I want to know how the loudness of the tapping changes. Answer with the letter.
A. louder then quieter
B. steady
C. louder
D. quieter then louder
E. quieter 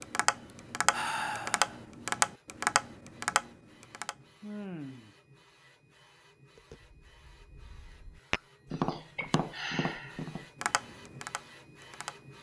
E.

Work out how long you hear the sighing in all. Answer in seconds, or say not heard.
3 s.